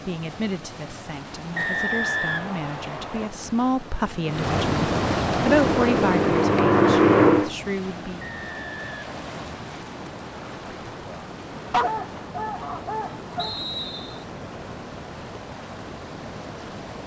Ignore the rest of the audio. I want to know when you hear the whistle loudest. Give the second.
2 s.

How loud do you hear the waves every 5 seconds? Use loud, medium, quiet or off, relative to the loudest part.
loud, loud, medium, medium.